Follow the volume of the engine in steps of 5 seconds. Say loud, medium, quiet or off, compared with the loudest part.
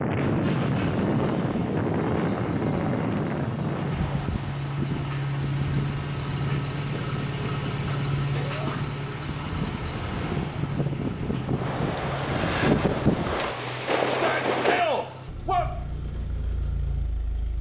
medium, loud, medium, medium.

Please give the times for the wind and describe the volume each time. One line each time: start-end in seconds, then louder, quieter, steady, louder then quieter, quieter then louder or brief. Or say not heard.
0.0-14.8 quieter then louder.